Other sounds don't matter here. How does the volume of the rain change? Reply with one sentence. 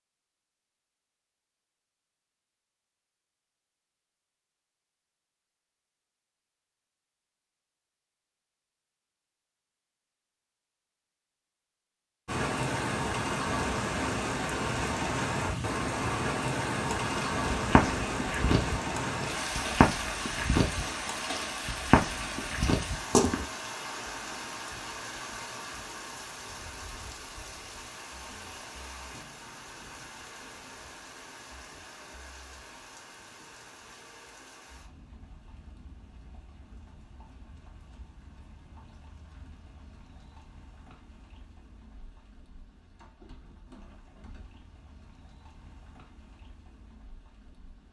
The volume of the rain goes down.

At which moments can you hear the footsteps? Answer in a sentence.
You can hear the footsteps from 16.9 to 23.4 s.